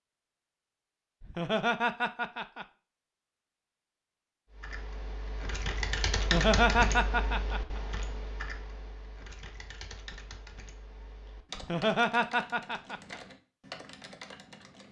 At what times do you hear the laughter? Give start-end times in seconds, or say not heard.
1.2-2.6, 6.2-7.8, 11.6-13.2.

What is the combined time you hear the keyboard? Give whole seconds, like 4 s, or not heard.
10 s.